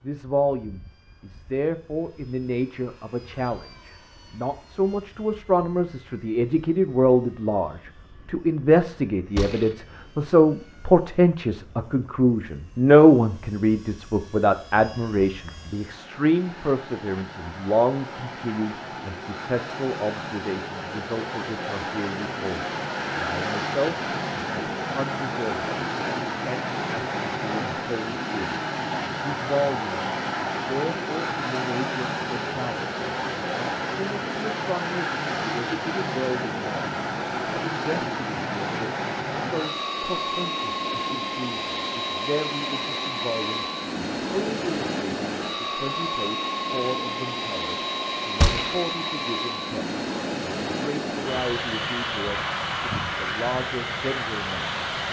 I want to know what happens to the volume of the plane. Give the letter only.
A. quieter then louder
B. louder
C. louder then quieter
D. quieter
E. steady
B.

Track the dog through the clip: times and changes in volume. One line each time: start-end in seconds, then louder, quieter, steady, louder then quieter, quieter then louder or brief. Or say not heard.
not heard.